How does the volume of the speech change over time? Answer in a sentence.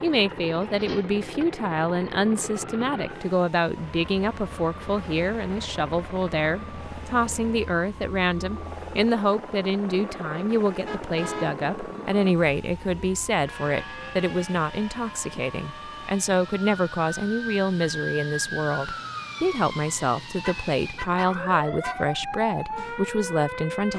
The loudness of the speech stays about the same.